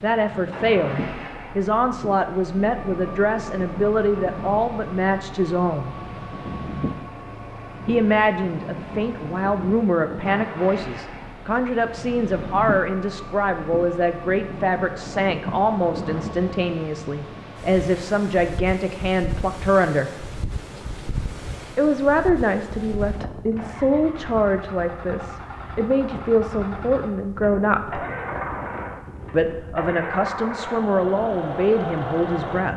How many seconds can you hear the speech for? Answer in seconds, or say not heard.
28 s.